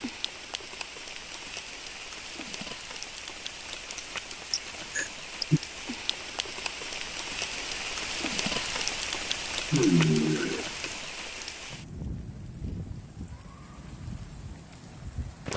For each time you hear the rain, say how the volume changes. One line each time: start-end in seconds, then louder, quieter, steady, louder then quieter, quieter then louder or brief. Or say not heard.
0.0-15.5 louder then quieter.